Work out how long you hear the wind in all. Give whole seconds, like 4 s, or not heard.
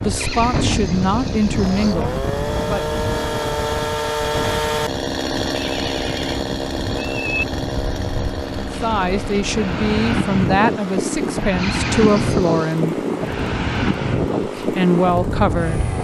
16 s.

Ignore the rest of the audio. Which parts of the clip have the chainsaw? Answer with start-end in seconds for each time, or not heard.
0.0-16.0.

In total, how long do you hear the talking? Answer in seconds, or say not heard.
9 s.